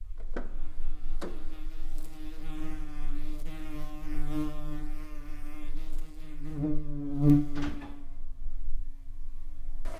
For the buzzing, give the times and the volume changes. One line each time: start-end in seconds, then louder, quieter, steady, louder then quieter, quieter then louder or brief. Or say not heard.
0.0-9.9 louder then quieter.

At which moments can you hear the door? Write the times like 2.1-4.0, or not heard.
0.1-1.6, 7.5-8.2.